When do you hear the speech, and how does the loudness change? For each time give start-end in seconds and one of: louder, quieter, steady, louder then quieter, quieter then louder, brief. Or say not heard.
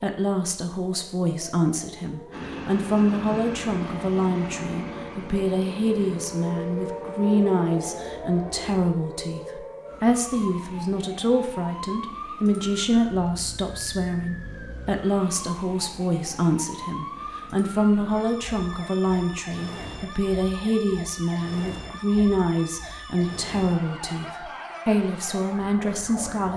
0.0-26.5 steady.